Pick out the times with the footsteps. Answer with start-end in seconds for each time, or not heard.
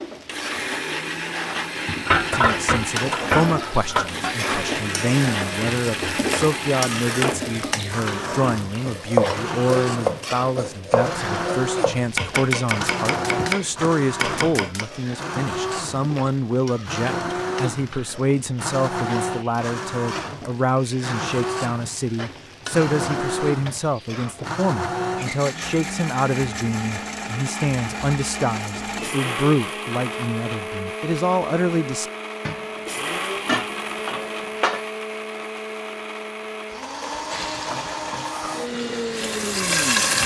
not heard.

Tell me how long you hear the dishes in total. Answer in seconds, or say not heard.
5 s.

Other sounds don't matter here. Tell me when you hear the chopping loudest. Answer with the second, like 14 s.
9 s.